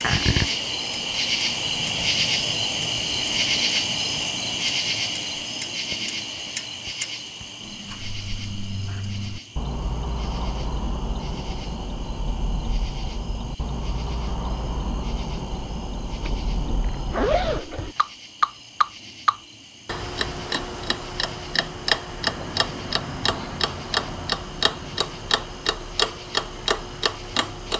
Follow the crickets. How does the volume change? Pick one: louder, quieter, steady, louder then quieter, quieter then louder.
quieter.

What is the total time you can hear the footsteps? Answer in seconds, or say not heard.
not heard.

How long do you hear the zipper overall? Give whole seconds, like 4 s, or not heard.
2 s.